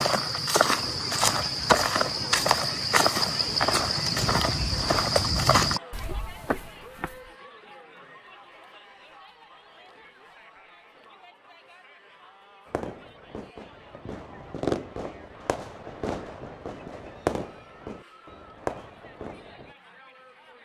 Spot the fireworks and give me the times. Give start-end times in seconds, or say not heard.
12.7-19.8.